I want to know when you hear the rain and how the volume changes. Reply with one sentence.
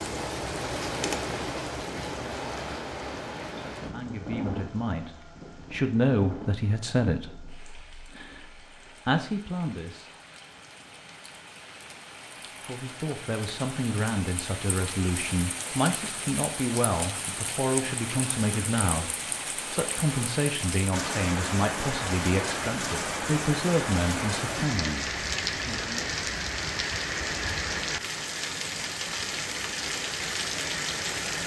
The rain can be heard from 0.0 to 31.4 s, getting quieter then louder.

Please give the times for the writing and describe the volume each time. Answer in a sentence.
You can't hear the writing here.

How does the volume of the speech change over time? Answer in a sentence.
The loudness of the speech stays about the same.